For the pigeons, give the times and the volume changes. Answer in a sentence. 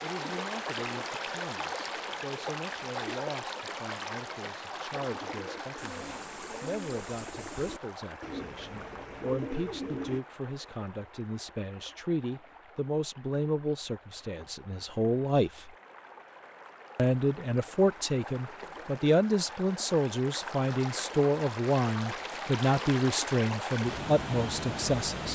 You can hear the pigeons from 5.0 to 10.2 s, getting louder.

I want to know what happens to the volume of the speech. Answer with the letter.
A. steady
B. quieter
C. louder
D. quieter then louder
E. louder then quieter
C.